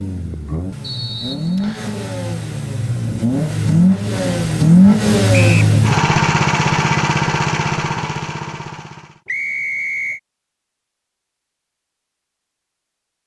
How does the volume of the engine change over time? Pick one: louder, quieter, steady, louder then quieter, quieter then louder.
louder then quieter.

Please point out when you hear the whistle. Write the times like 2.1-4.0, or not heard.
0.8-1.9, 5.3-5.8, 9.2-10.2.